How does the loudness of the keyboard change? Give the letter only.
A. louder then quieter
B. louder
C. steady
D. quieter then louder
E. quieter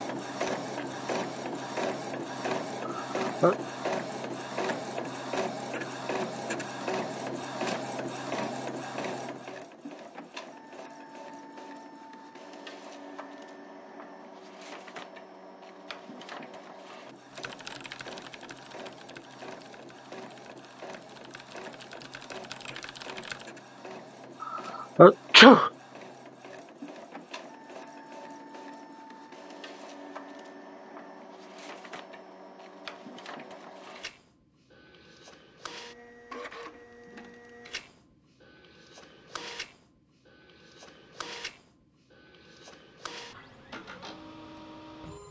D.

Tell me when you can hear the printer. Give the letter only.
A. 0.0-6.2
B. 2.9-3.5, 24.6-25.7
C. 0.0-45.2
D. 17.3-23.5
C.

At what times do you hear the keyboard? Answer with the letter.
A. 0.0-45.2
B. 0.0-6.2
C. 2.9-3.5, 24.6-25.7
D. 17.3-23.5
D.